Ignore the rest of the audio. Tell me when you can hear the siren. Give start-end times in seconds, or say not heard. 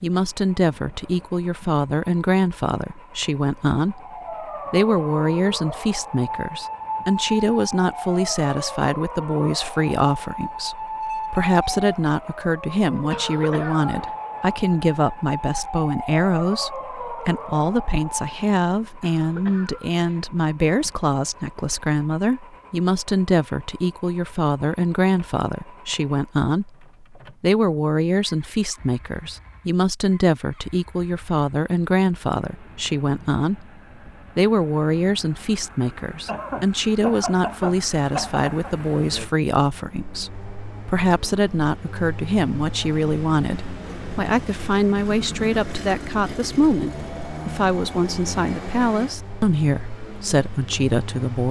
3.9-18.4.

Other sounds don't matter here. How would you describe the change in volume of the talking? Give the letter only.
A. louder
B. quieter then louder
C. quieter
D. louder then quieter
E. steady
E.